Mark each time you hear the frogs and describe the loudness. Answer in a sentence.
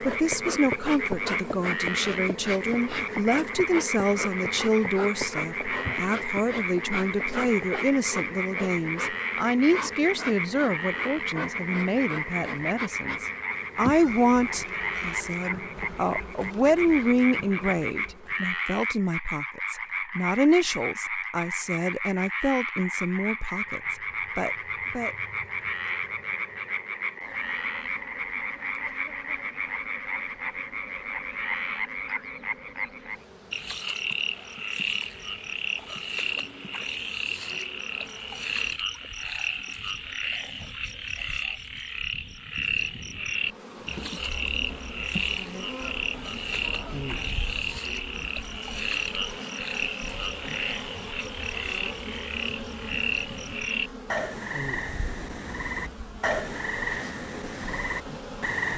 You can hear the frogs from 0.0 to 58.7 s, at a steady volume.